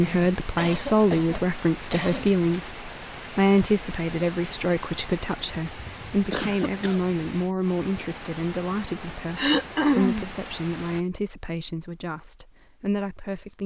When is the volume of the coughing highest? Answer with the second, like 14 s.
10 s.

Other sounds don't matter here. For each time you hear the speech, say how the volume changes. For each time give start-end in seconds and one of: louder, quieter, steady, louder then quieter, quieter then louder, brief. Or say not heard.
0.0-13.6 quieter.